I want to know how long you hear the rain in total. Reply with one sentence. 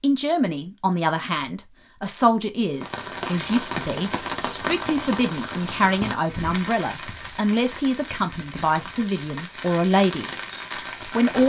The rain can be heard for 9 seconds in total.